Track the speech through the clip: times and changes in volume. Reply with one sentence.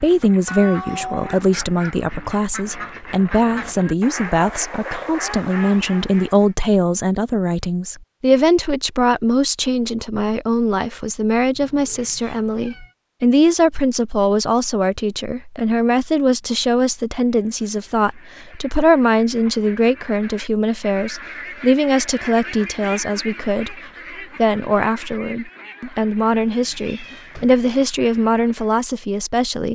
The speech can be heard from 0.0 to 29.6 s, at a steady volume.